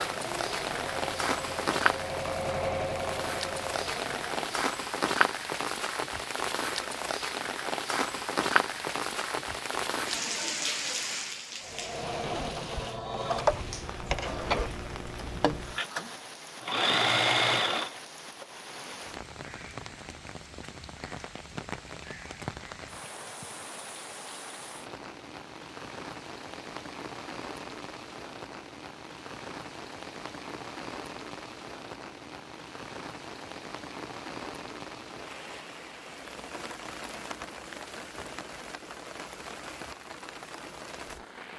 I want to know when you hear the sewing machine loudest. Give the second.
17 s.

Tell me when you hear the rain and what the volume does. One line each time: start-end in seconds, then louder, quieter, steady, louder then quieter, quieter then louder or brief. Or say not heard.
0.0-41.5 quieter.